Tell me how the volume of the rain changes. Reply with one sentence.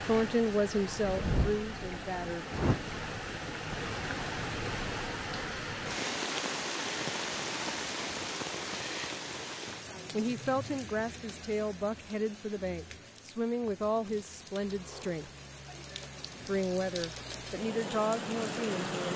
The loudness of the rain goes down, then up.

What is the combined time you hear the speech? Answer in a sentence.
The speech can be heard for 10 seconds in total.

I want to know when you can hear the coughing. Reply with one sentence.
You can't hear the coughing here.